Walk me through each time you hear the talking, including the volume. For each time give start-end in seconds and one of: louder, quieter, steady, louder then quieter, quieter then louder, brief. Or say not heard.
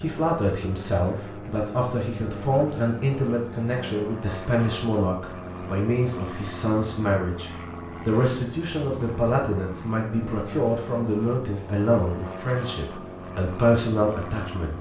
0.0-14.7 steady.